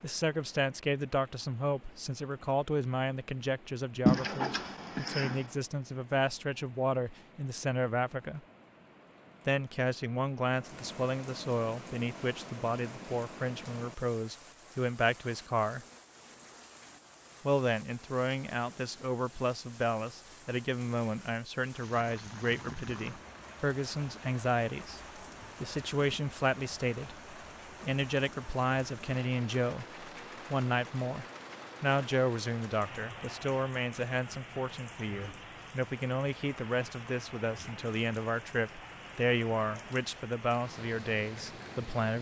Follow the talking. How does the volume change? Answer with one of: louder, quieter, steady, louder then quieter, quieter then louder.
steady.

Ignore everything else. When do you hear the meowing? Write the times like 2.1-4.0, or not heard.
4.0-5.5.